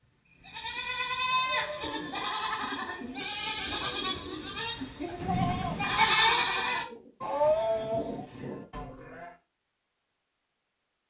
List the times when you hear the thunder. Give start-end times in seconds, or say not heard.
5.2-6.2.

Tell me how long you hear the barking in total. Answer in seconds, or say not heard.
not heard.